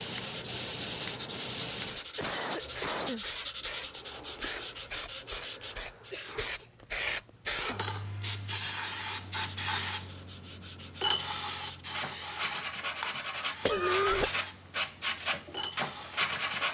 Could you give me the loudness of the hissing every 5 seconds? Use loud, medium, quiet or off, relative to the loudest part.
medium, loud, loud, medium.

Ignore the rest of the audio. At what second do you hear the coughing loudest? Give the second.
14 s.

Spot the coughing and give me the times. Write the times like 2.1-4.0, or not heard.
1.9-3.2, 6.1-6.5, 13.7-14.3.